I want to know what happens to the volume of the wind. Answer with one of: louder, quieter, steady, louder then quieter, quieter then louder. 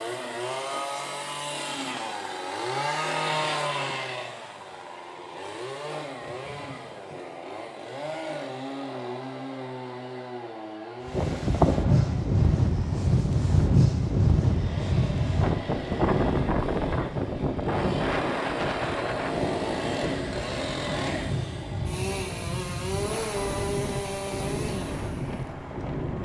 quieter.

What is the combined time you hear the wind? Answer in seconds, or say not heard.
15 s.